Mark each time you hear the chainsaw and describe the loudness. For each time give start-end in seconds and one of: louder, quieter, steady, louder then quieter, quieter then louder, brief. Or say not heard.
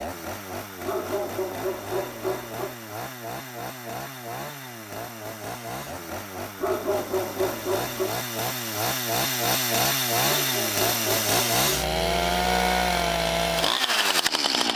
0.0-14.7 louder.